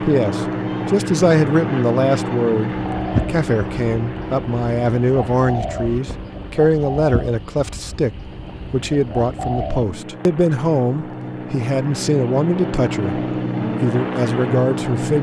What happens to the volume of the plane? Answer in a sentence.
The volume of the plane goes down, then up.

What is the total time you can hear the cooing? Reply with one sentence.
The cooing can be heard for 7 seconds in total.